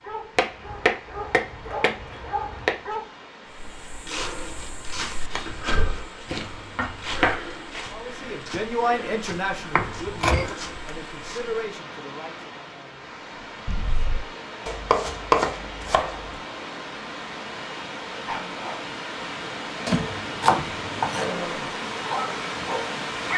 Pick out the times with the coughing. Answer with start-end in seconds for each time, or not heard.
13.7-14.2.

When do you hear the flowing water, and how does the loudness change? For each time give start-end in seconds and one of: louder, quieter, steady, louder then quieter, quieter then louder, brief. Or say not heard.
0.0-23.3 louder.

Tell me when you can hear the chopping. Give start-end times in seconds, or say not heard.
0.3-2.8, 6.3-7.4, 9.8-10.5, 14.7-16.3, 19.9-21.3.